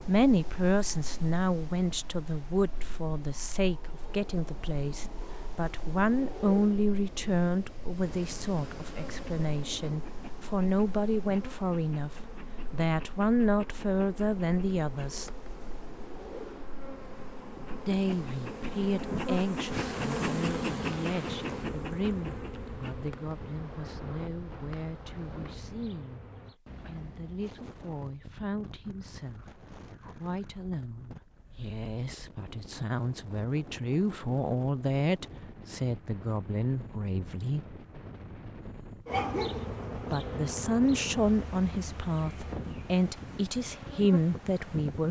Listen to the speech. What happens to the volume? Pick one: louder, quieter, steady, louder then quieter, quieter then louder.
quieter then louder.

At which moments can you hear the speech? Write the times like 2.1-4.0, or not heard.
0.1-15.3, 17.9-37.8, 40.0-45.0.